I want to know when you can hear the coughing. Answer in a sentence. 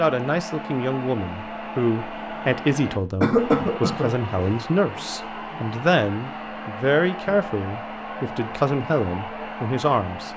The coughing can be heard from 3.2 to 4.6 s.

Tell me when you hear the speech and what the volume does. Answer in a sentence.
The speech can be heard from 0.0 to 10.3 s, at a steady volume.